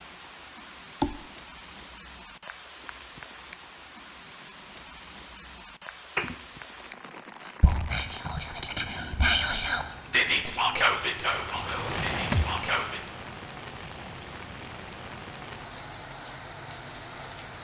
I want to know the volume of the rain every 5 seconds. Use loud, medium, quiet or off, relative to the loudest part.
medium, medium, loud, loud.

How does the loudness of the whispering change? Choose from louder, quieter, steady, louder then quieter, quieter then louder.
louder then quieter.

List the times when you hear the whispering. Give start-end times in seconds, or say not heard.
7.6-13.0.